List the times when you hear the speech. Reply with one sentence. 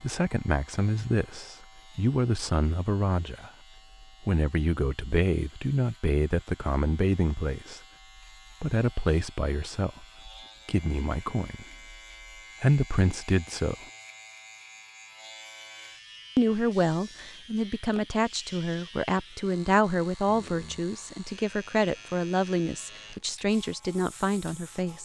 You can hear the speech from 0.0 to 7.8 s, from 8.6 to 11.9 s, from 12.6 to 13.8 s and from 16.4 to 25.0 s.